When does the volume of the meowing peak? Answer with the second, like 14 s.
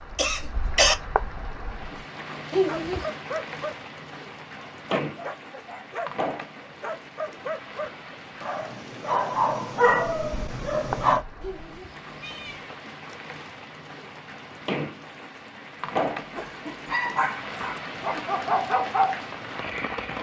3 s.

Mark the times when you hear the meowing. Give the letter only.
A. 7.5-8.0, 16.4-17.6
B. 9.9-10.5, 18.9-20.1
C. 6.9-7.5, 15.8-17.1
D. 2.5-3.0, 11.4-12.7
D.